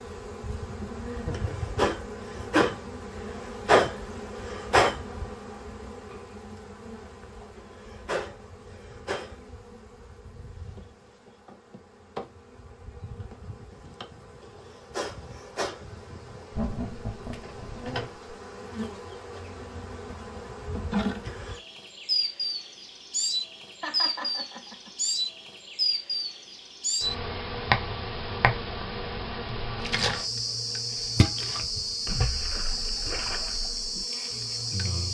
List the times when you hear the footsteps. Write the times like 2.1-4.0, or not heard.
not heard.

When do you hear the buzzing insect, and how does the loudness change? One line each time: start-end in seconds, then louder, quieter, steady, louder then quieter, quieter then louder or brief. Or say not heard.
0.0-35.0 quieter then louder.